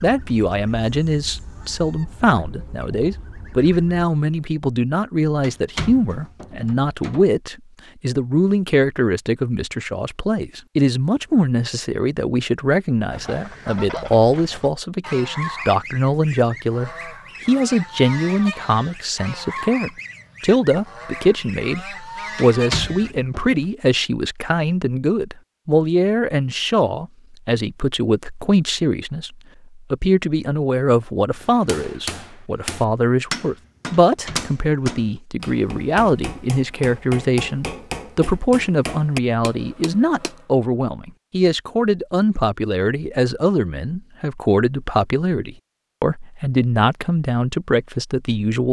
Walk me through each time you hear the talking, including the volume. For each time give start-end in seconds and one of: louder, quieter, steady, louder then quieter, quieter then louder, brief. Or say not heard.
0.0-48.6 steady.